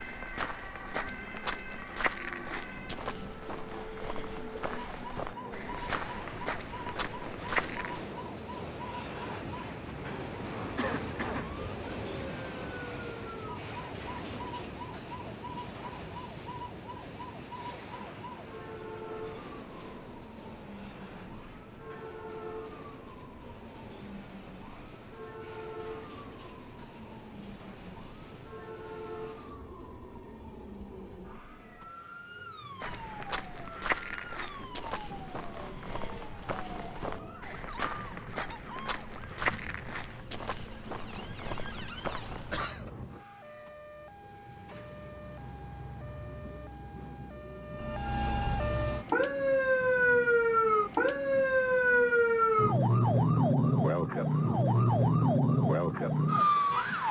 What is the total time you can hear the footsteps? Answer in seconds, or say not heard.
18 s.